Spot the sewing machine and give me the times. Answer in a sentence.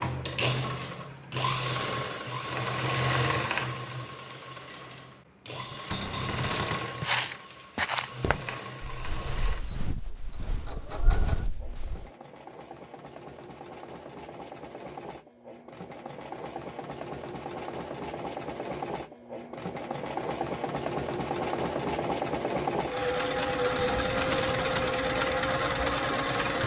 You can hear the sewing machine from 0.0 to 26.6 s.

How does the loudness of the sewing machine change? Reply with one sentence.
The volume of the sewing machine goes down, then up.